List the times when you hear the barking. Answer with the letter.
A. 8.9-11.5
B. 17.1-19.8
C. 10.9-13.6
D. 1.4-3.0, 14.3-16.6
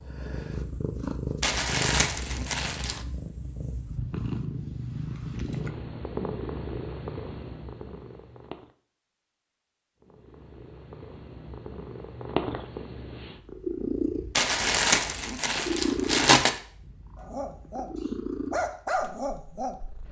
B.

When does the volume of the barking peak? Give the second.
19 s.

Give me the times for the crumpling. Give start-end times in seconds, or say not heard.
1.4-3.0, 14.3-16.6.